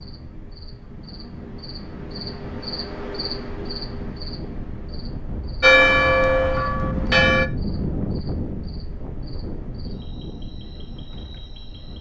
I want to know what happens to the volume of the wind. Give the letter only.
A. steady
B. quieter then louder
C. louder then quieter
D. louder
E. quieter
C.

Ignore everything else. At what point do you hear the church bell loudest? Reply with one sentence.
The loudest moment of the church bell is at 6 seconds.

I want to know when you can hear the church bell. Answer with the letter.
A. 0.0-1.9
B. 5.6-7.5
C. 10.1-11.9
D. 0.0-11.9
B.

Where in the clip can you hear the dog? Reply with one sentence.
You can't hear the dog here.